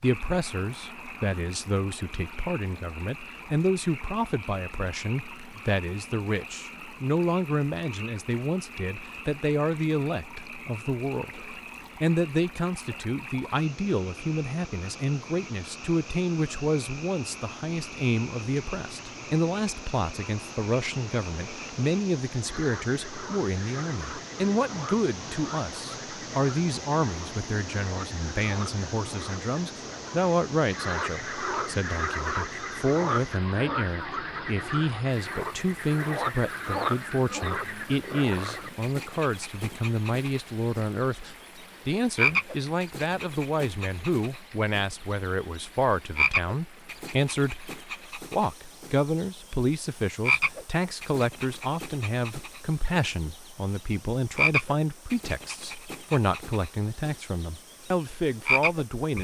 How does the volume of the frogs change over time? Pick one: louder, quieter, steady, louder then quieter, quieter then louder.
louder.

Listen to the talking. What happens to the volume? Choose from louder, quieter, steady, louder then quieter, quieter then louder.
steady.